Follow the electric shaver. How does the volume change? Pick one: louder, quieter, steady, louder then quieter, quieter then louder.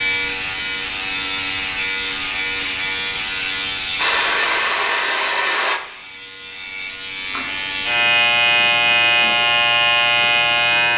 quieter then louder.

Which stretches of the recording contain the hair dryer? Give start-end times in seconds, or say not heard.
4.0-5.8.